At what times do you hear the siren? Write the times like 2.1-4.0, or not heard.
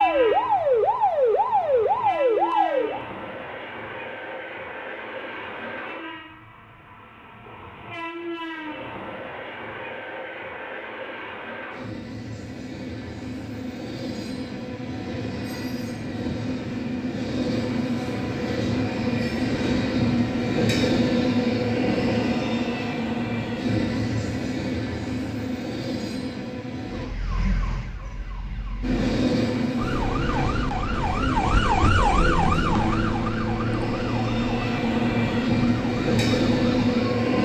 0.0-3.0, 26.9-37.2.